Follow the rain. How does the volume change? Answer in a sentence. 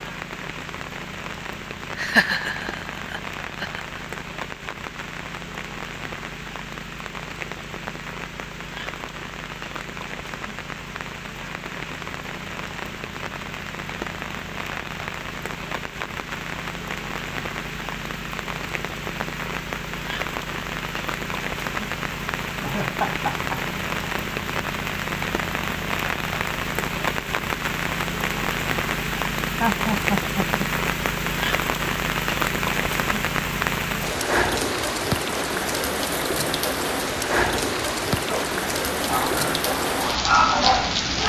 The loudness of the rain goes up.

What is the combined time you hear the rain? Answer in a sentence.
You can hear the rain for 41 seconds altogether.